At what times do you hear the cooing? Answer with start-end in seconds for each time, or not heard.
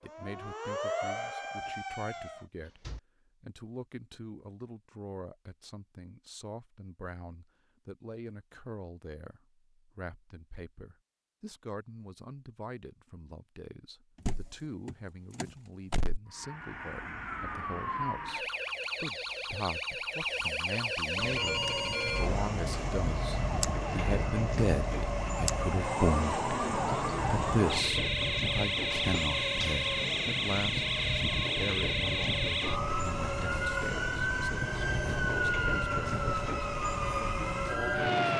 not heard.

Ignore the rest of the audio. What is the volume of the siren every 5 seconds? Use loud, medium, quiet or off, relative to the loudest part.
medium, off, off, medium, loud, loud, loud, loud.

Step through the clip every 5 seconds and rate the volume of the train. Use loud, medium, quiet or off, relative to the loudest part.
off, off, off, off, loud, loud, loud, loud.